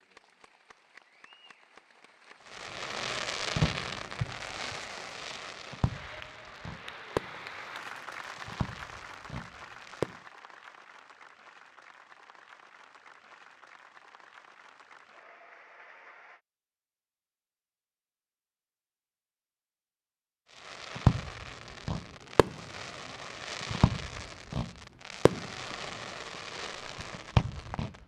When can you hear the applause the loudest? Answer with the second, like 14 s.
8 s.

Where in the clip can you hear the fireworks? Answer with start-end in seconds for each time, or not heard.
2.5-10.2, 20.6-27.9.